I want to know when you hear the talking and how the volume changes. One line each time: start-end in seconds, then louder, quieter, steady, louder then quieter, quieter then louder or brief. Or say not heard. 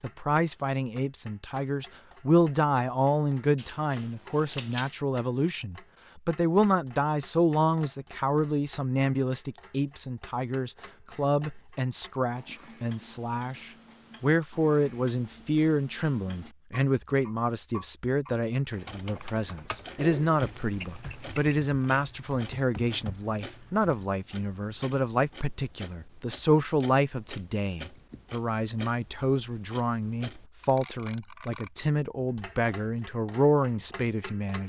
0.0-34.6 steady.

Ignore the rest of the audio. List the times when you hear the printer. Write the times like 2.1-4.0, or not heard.
not heard.